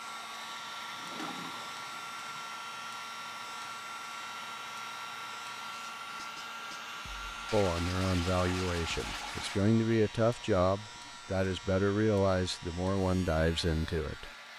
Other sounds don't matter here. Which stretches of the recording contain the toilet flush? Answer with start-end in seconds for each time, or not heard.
0.9-2.5, 7.5-9.6.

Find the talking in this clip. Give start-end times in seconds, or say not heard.
7.5-14.5.